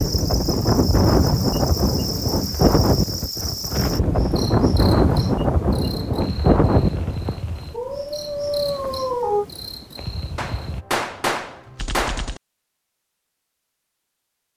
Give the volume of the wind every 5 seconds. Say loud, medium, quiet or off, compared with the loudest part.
loud, loud, off.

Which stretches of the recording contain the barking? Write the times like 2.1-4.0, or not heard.
7.7-9.4.